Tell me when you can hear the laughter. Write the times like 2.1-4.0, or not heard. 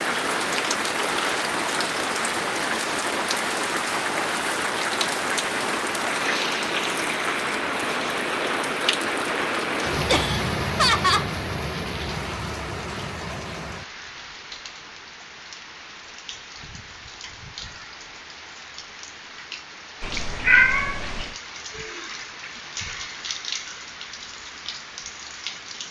10.1-11.3.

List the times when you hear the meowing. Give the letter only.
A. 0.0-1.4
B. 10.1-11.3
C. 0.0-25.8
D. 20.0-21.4
D.